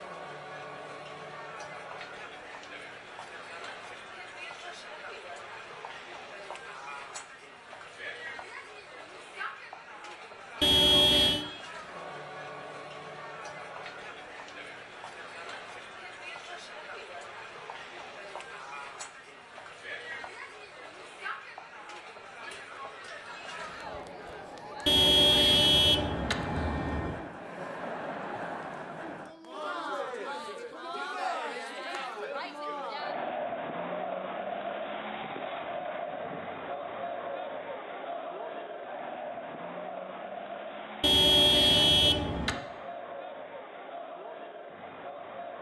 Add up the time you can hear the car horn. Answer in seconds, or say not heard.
5 s.